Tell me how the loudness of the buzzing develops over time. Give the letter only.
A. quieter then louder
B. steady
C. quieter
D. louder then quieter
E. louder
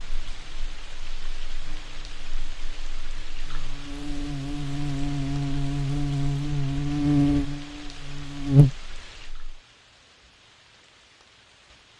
E.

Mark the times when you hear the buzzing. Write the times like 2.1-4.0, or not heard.
0.0-9.6.